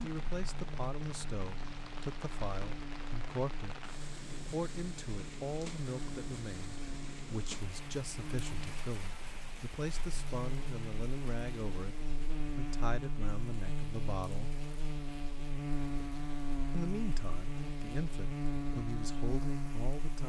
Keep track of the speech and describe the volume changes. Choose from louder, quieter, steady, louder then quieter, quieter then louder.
steady.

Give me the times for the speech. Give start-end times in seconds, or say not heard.
0.0-14.5, 16.7-20.2.